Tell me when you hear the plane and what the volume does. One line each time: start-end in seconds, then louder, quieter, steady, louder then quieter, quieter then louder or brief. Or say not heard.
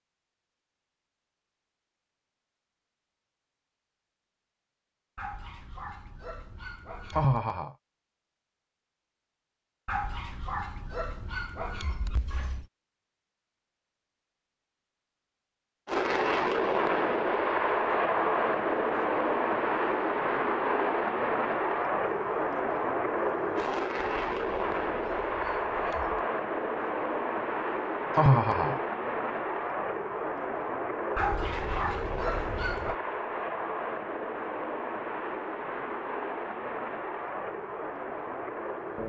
15.8-39.0 quieter.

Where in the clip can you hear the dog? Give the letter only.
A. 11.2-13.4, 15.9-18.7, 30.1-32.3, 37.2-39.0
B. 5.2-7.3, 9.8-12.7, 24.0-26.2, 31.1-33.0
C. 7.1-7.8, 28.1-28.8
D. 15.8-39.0
B.